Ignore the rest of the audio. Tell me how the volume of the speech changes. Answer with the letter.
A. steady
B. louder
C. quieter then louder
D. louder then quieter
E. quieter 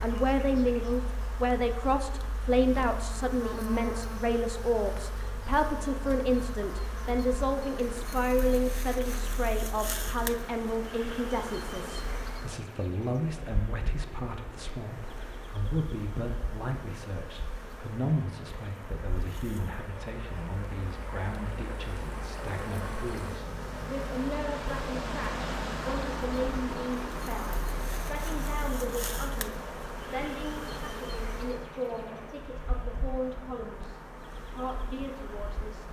E.